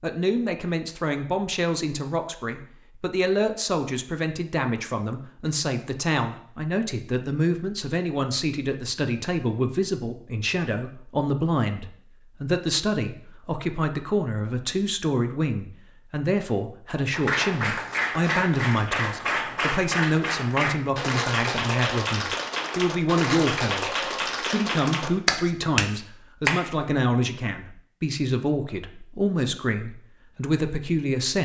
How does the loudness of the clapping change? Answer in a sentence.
The volume of the clapping stays about the same.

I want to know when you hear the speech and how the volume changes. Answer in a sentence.
The speech can be heard from 0.0 to 31.3 s, at a steady volume.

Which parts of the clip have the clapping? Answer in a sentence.
The clapping can be heard from 17.1 to 26.7 s.